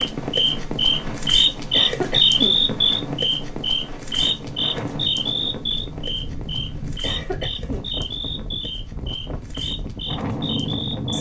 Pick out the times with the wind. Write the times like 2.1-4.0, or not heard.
0.0-11.1.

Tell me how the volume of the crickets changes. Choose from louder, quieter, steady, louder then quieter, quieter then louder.
quieter.